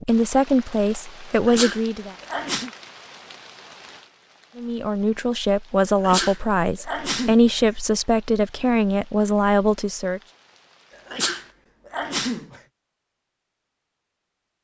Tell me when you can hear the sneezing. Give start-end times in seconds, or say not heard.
1.3-2.7, 6.0-7.7, 11.1-12.6.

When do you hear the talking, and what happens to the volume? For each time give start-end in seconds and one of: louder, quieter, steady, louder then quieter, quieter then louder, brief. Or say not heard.
0.1-2.1 brief
4.5-10.2 steady.